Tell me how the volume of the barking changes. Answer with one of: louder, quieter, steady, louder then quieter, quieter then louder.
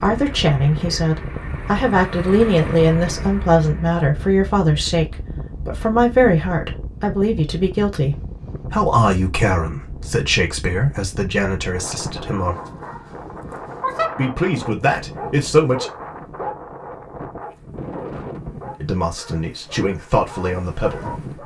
quieter.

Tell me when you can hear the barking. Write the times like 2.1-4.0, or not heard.
12.1-21.4.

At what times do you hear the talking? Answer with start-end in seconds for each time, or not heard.
0.0-12.6, 14.2-15.8, 18.8-21.1.